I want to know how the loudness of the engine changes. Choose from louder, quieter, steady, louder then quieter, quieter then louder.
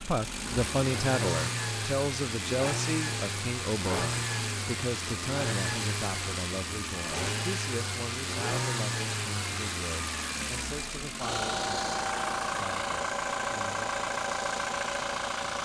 steady.